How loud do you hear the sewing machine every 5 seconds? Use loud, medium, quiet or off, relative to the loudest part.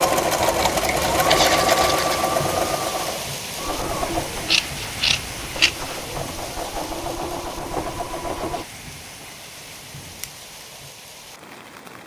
loud, medium, off.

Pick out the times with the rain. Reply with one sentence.
You can hear the rain from 0.0 to 12.0 s.